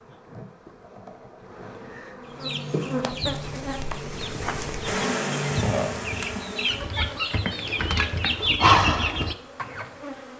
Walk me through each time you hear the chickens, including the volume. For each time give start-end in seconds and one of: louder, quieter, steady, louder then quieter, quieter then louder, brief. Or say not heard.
2.4-9.9 louder.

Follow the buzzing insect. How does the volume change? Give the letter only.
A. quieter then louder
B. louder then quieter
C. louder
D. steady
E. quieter
B.